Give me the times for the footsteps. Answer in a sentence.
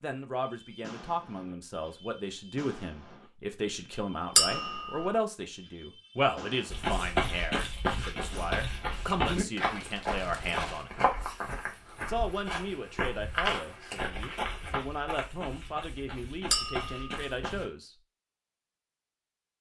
You can hear the footsteps from 6.7 to 17.6 s.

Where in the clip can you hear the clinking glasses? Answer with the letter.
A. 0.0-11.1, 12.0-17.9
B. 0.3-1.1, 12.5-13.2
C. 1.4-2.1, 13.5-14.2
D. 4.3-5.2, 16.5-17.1
D.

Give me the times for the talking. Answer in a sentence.
You can hear the talking from 0.0 to 11.1 s and from 12.0 to 17.9 s.